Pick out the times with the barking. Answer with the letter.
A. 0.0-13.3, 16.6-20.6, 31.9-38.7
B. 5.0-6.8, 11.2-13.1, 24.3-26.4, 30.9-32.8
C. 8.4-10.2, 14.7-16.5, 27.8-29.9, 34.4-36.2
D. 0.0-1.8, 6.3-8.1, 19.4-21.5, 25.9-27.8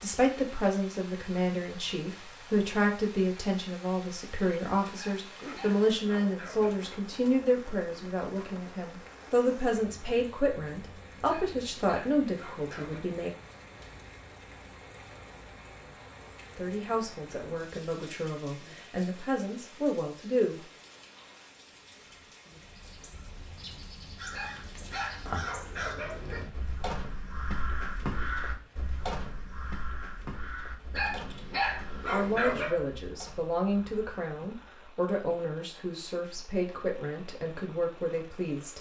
B.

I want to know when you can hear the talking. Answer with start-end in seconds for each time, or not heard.
0.0-13.3, 16.6-20.6, 31.9-38.7.